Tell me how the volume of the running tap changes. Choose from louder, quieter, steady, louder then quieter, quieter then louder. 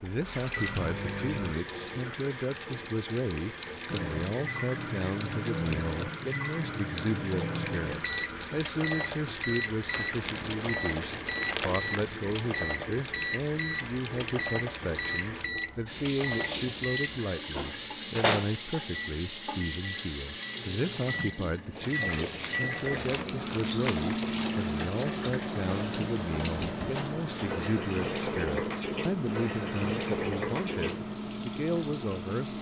steady.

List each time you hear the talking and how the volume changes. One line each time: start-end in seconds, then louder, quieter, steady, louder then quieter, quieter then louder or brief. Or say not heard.
0.0-32.5 steady.